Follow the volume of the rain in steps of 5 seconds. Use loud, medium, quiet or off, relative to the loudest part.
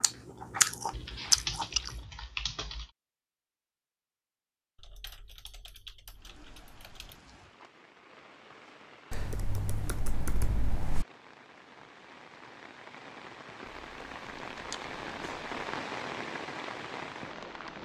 off, quiet, medium, loud.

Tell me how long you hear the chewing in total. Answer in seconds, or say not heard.
2 s.